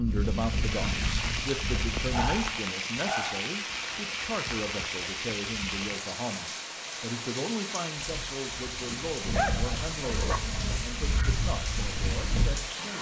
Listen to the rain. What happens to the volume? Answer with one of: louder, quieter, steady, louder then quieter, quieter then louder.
steady.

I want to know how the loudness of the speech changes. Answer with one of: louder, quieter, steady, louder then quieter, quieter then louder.
quieter.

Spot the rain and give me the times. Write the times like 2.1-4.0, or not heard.
0.0-12.9.